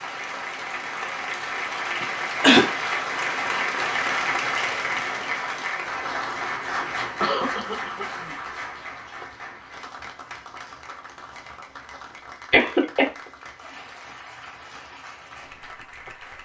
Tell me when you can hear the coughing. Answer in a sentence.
The coughing can be heard from 2.0 to 2.6 s, from 7.0 to 8.3 s and from 12.5 to 13.1 s.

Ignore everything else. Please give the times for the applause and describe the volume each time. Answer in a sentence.
You can hear the applause from 0.0 to 16.4 s, getting quieter.